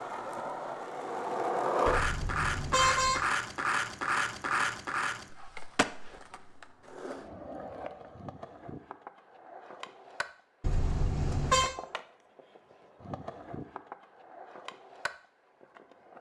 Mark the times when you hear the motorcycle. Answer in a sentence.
The motorcycle can't be heard in this clip.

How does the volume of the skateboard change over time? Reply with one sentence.
The loudness of the skateboard goes down.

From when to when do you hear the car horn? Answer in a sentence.
You can hear the car horn from 1.9 to 3.2 s and from 10.6 to 11.7 s.